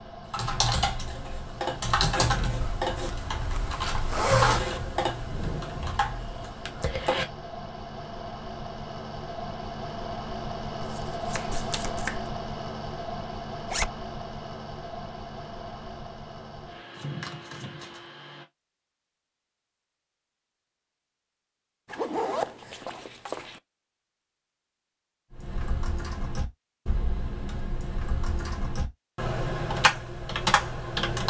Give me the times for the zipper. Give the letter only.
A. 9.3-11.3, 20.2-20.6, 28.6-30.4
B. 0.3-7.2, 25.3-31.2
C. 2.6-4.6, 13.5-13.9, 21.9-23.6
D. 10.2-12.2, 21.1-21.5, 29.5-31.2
C.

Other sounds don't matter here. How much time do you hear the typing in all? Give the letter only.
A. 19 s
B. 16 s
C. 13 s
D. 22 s
C.